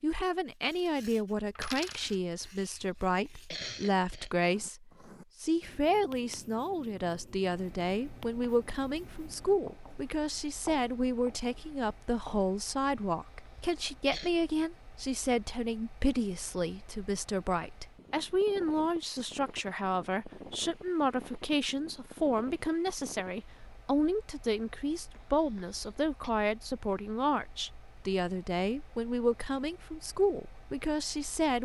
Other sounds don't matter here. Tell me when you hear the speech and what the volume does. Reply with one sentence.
The speech can be heard from 0.0 to 31.6 s, at a steady volume.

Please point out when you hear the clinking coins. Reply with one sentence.
The clinking coins can be heard from 1.6 to 2.2 s.